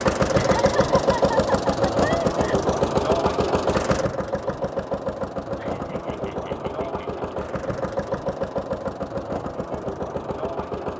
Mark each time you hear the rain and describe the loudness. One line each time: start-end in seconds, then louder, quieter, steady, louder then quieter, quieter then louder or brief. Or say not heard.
not heard.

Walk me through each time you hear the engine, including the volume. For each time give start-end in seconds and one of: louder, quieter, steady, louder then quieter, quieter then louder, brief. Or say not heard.
0.0-10.9 quieter.